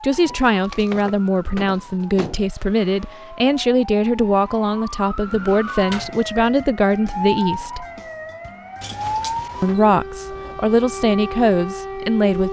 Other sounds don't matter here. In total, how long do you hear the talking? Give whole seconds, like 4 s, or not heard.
11 s.